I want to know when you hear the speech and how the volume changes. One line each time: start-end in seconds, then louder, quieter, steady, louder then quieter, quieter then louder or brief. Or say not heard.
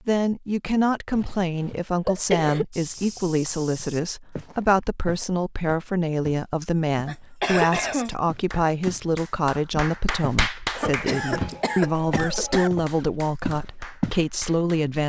0.1-15.0 steady.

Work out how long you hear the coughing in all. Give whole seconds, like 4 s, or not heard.
5 s.